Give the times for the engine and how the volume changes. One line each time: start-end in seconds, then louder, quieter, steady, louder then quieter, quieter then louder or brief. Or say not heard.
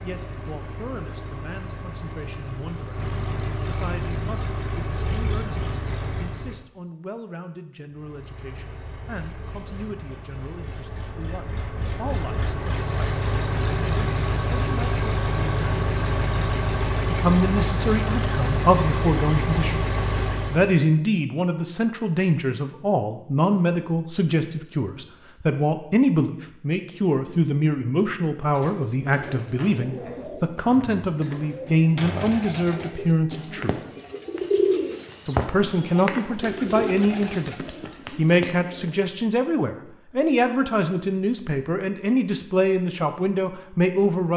0.0-6.7 louder
7.9-20.8 louder.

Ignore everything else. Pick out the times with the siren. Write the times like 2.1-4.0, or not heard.
not heard.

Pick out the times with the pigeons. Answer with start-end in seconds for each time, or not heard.
28.5-39.0.